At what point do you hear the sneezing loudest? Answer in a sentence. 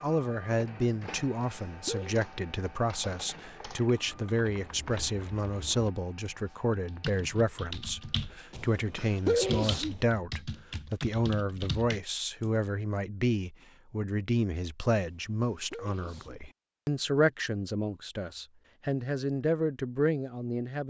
The volume of the sneezing peaks at 9 seconds.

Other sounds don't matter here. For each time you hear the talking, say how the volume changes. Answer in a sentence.
You can hear the talking from 0.0 to 20.8 s, at a steady volume.